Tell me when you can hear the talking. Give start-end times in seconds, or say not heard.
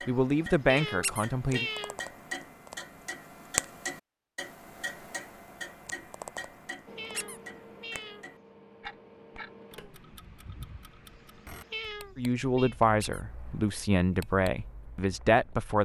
0.1-1.6, 12.2-15.8.